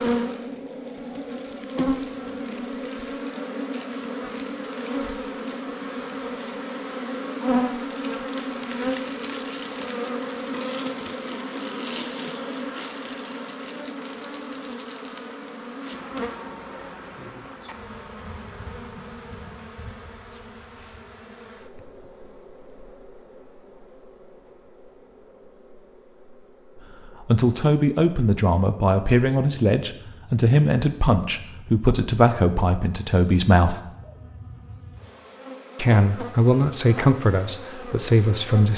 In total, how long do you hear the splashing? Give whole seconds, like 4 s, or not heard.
not heard.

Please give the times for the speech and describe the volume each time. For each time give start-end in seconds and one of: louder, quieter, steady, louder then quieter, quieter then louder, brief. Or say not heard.
26.9-33.8 steady
35.8-38.7 brief.